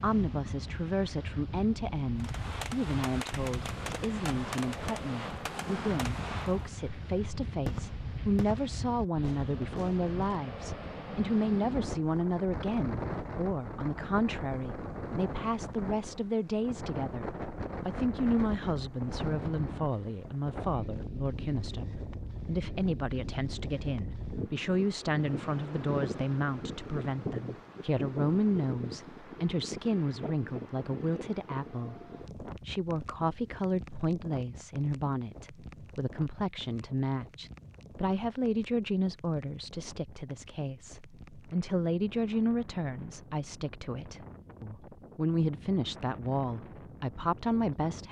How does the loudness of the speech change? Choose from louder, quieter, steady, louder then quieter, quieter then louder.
steady.